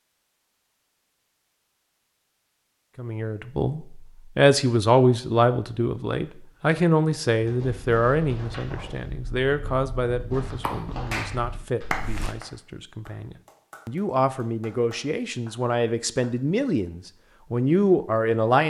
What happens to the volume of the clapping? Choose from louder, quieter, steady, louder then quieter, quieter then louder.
quieter then louder.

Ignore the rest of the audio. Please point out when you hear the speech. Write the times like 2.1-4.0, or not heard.
3.0-18.6.